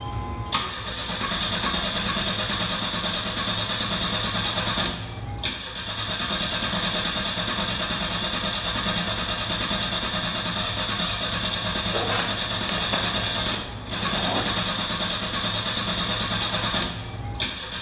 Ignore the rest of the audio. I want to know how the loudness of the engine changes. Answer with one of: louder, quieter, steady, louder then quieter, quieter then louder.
steady.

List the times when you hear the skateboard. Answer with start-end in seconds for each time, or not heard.
11.9-14.4.